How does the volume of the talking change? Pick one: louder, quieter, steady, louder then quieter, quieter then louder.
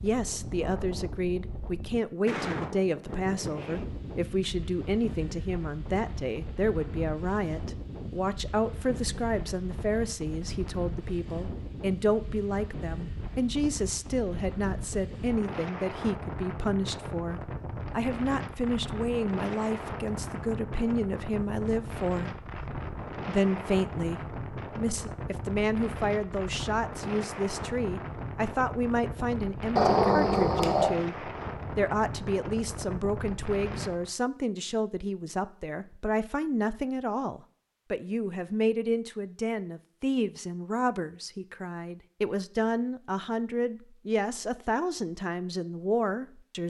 steady.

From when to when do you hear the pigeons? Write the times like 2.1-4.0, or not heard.
not heard.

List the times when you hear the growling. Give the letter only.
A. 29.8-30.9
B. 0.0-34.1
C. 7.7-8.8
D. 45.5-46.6
A.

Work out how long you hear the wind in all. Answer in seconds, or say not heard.
34 s.